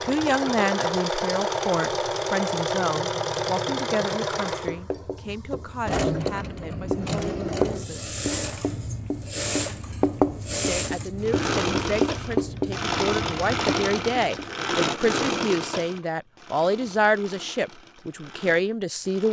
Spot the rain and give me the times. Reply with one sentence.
The rain can't be heard in this clip.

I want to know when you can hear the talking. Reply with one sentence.
You can hear the talking from 0.1 to 8.2 s and from 10.7 to 19.2 s.